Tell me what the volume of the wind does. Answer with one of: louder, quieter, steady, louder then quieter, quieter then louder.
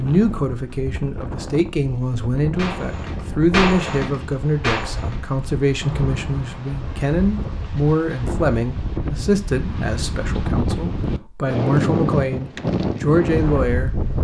louder.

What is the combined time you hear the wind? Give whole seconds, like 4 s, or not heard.
14 s.